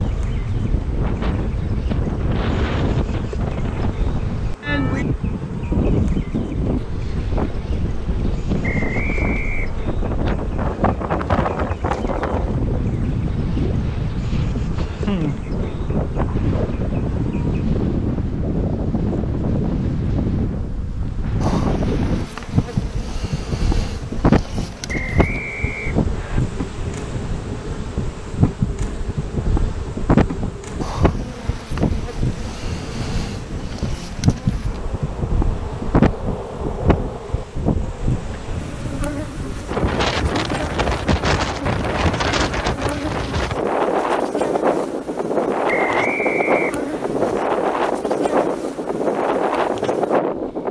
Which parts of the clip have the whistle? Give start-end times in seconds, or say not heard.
8.6-9.8, 24.9-26.4, 45.6-47.1.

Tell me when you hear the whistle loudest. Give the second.
46 s.